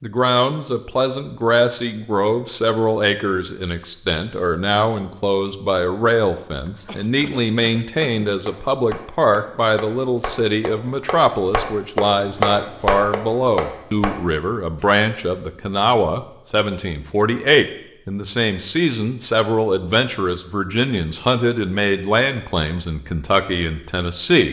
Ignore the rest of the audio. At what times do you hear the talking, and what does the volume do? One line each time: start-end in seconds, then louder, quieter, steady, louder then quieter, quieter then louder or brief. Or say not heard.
0.0-24.4 steady.